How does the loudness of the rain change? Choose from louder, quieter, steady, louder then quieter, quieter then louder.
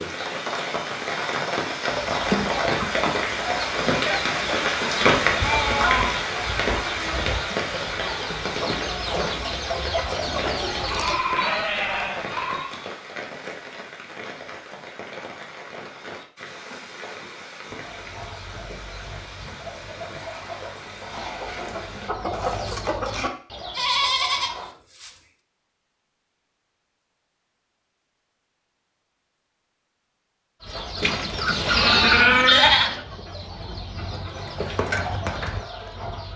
quieter.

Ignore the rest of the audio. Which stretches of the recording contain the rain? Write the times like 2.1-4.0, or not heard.
0.0-22.1.